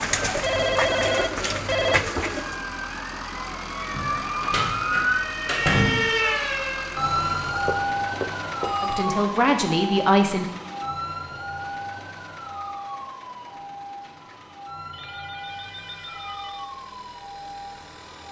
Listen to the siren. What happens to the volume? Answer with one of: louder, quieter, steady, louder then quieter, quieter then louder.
quieter.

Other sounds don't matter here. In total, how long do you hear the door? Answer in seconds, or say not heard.
2 s.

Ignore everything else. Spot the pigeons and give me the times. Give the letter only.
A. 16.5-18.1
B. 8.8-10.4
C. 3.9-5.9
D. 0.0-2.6
D.